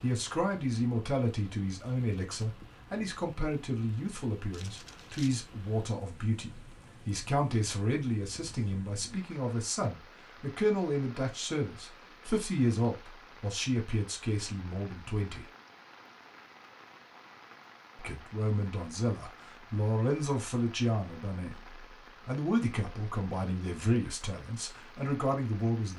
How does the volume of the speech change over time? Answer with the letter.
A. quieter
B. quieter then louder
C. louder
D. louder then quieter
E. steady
E.